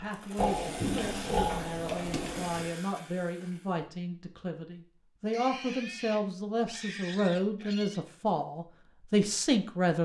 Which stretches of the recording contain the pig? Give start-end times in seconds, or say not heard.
0.3-2.7, 5.3-8.1.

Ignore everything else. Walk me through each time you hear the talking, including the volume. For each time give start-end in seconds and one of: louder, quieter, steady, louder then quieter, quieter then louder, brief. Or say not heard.
0.0-10.0 louder.